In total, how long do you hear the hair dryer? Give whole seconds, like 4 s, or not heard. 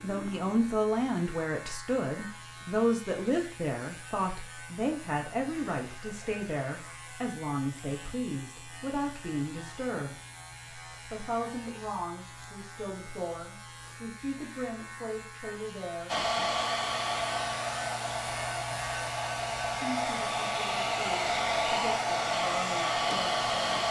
8 s.